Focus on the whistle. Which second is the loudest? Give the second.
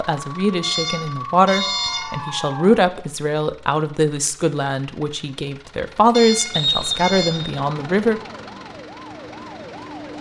7 s.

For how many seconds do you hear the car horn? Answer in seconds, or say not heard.
3 s.